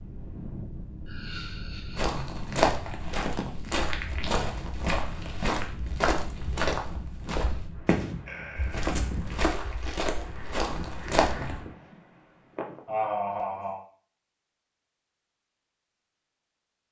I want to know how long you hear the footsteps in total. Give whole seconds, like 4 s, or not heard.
10 s.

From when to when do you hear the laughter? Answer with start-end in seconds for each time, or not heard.
1.1-2.8, 8.2-8.9, 12.8-13.8.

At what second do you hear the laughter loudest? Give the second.
13 s.